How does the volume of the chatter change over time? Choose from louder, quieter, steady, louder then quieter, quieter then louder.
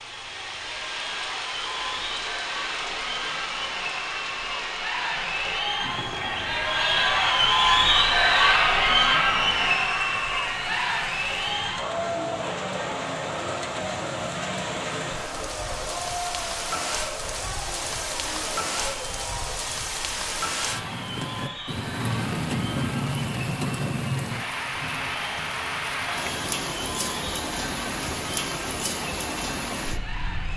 louder then quieter.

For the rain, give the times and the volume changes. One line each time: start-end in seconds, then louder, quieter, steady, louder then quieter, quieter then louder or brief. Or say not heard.
0.0-30.5 quieter then louder.